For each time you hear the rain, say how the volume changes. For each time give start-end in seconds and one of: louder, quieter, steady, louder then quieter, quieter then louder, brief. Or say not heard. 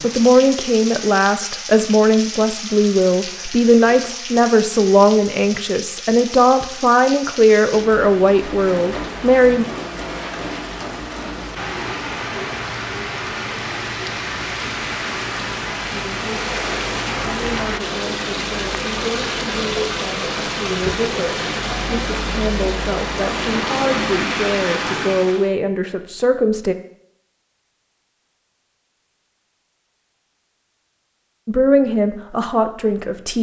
0.0-25.5 louder.